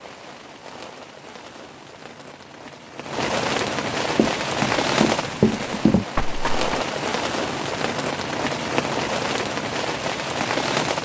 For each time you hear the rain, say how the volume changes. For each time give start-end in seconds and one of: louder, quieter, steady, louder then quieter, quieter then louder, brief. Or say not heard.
0.0-11.0 louder.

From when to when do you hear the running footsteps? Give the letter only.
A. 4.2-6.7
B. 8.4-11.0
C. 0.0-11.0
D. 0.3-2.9
A.